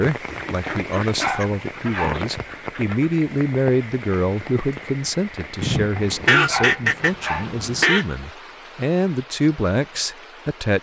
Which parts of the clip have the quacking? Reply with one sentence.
You can hear the quacking from 0.2 to 3.1 s and from 5.6 to 8.1 s.